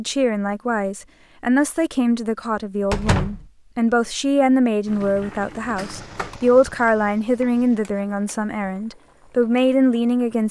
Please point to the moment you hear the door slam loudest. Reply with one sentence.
The loudest moment of the door slam is at 3 seconds.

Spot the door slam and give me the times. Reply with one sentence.
You can hear the door slam from 2.9 to 3.5 s and from 5.8 to 6.4 s.